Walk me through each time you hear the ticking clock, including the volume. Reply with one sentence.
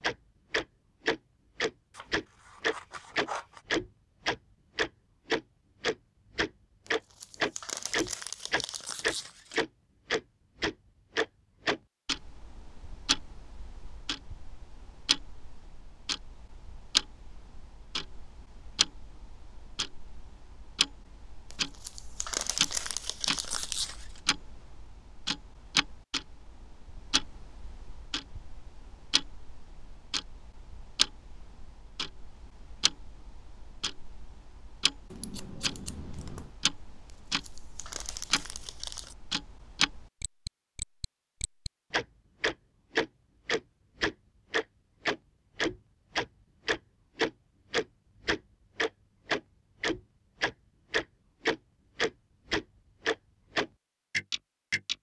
The ticking clock can be heard from 0.0 to 54.9 s, getting quieter then louder.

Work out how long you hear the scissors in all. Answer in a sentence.
The scissors can be heard for 3 seconds in total.